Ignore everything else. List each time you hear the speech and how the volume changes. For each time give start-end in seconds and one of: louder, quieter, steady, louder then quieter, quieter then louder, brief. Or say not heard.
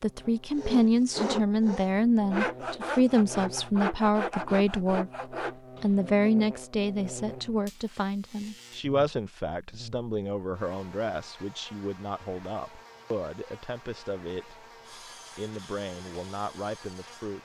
0.0-5.1 steady
5.8-17.4 quieter.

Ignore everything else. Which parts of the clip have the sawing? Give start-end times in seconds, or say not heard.
0.5-6.3, 14.8-17.4.